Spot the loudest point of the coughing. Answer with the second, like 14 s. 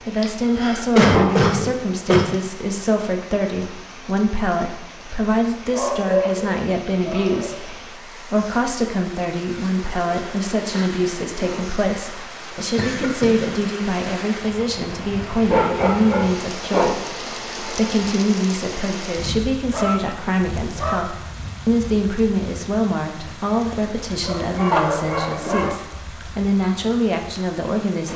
1 s.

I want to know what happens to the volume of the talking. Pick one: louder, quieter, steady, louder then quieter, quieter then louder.
steady.